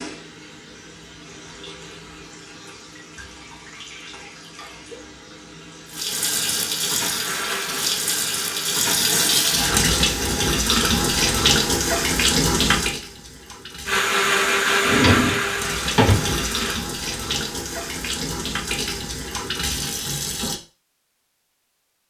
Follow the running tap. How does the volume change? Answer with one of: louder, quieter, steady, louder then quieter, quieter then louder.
louder then quieter.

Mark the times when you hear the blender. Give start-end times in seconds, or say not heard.
7.0-8.8, 13.8-16.8.